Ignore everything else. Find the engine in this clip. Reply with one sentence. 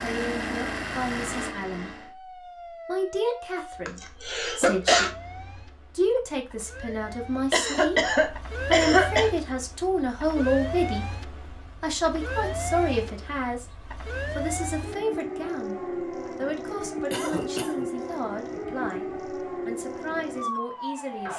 You can hear the engine from 0.0 to 2.1 s.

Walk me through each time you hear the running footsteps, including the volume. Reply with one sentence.
The running footsteps can't be heard in this clip.